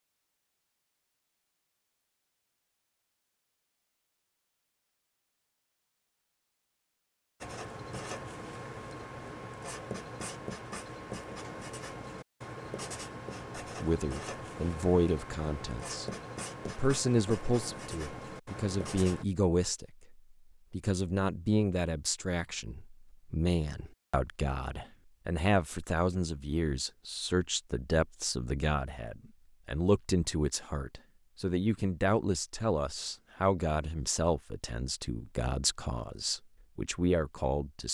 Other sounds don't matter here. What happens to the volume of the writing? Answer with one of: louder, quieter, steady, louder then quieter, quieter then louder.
steady.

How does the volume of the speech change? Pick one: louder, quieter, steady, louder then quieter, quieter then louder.
steady.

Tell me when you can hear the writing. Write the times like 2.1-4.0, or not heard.
7.4-19.2.